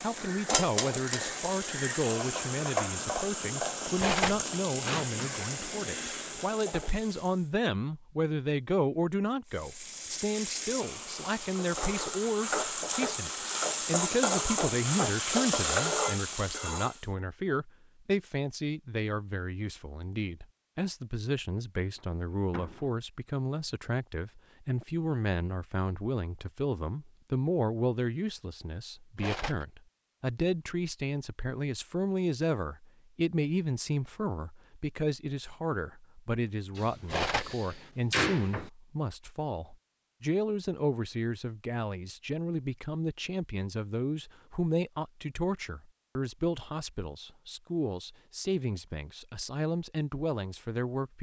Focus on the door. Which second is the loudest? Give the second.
38 s.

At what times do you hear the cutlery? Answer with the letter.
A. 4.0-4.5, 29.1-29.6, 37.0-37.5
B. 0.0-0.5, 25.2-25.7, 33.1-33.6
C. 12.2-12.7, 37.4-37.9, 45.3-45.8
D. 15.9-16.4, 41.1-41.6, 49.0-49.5
A.